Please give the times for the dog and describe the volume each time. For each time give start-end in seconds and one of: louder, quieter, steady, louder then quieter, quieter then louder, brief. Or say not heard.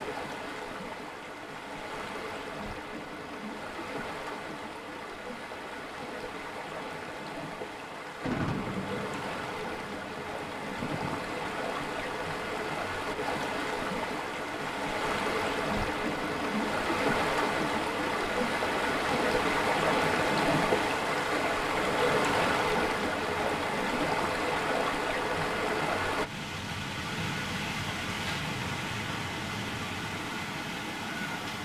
not heard.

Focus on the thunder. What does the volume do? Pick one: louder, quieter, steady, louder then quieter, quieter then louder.
quieter then louder.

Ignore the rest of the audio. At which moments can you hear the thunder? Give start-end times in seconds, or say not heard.
7.8-12.1.